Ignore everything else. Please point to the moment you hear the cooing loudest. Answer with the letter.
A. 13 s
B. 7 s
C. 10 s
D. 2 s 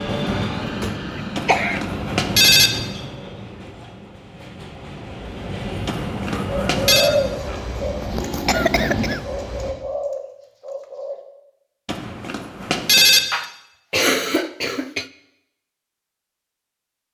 B.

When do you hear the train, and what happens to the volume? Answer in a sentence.
The train can be heard from 0.0 to 9.8 s, getting quieter then louder.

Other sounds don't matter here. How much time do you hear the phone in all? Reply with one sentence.
The phone can be heard for 4 seconds in total.